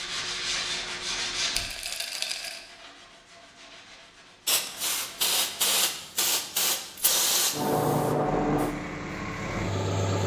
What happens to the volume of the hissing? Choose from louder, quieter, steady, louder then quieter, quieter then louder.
steady.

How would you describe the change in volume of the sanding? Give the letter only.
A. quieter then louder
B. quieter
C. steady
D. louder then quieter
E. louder
B.